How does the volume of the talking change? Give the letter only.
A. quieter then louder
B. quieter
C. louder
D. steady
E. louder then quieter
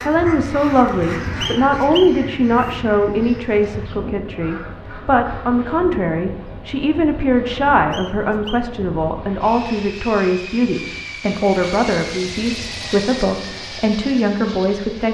D.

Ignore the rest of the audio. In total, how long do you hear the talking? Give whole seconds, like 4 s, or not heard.
15 s.